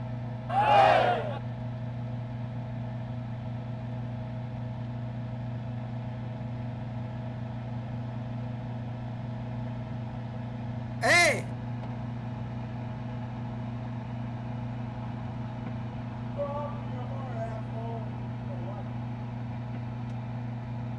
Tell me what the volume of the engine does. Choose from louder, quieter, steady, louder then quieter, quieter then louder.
steady.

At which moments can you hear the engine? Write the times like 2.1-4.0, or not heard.
0.0-20.9.